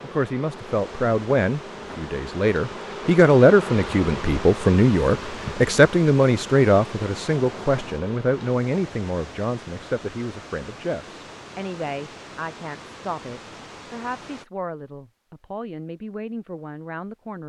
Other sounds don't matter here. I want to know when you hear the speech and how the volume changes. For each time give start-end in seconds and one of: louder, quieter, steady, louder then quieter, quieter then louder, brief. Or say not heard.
0.0-17.4 quieter.